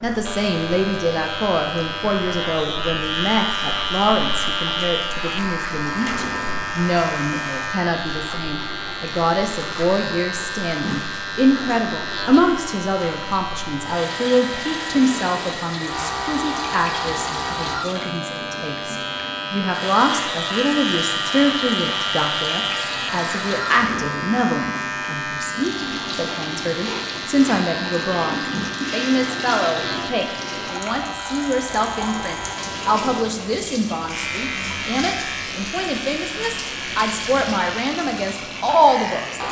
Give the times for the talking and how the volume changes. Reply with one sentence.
You can hear the talking from 0.0 to 39.4 s, at a steady volume.